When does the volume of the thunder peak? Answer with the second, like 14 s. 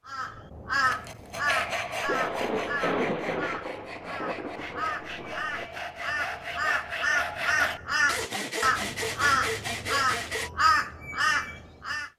3 s.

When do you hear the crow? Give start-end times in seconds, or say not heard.
0.1-12.1.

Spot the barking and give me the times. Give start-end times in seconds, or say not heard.
not heard.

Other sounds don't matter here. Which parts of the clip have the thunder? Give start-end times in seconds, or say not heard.
2.0-5.7.